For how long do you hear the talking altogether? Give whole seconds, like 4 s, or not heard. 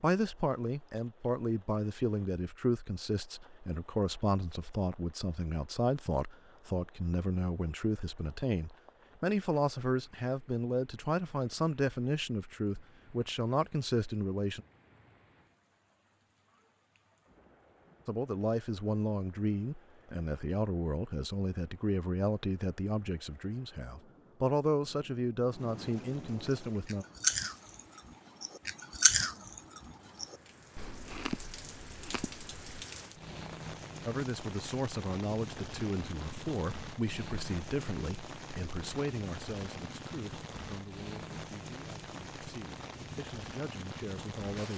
34 s.